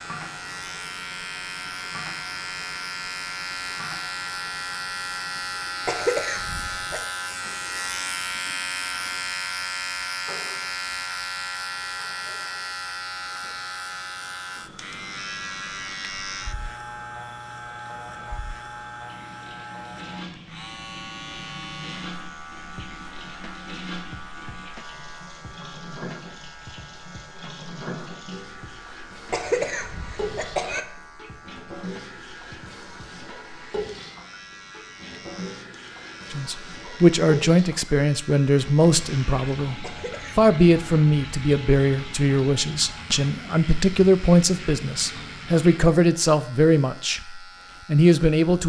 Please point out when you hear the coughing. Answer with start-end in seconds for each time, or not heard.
5.8-7.0, 29.3-30.9, 39.8-40.5.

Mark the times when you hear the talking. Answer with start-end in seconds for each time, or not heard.
36.3-48.6.